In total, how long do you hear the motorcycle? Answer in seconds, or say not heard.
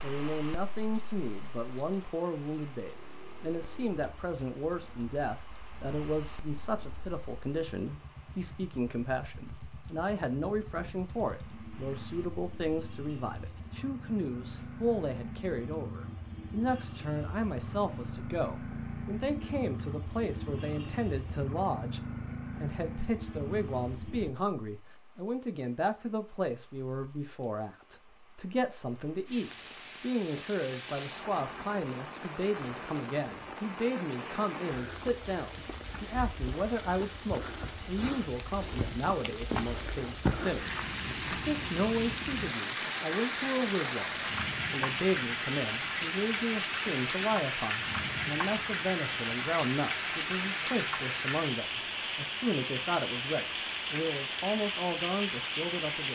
21 s.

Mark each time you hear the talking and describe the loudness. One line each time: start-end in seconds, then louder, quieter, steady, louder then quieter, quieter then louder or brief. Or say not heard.
0.0-56.0 steady.